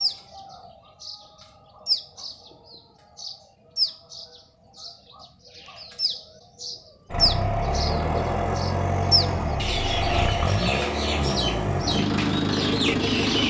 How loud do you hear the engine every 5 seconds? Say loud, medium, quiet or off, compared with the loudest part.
off, loud, loud.